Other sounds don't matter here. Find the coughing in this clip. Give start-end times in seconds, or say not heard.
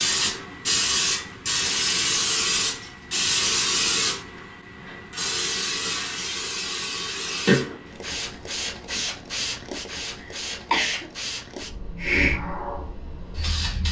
10.2-11.1.